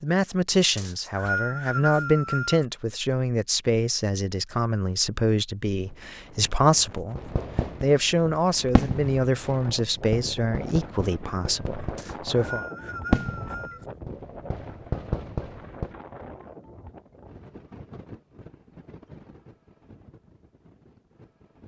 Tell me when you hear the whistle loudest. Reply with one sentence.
The loudest moment of the whistle is at 1 second.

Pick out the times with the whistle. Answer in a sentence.
The whistle can be heard from 0.8 to 2.6 s and from 11.9 to 13.8 s.